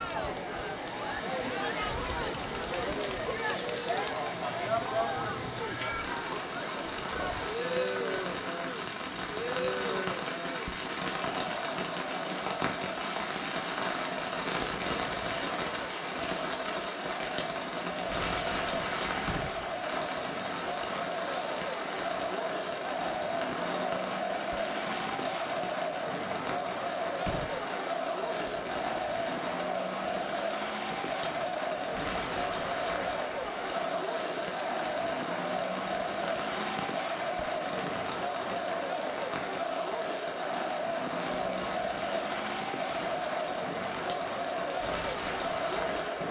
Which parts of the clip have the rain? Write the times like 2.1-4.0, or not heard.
0.0-46.2.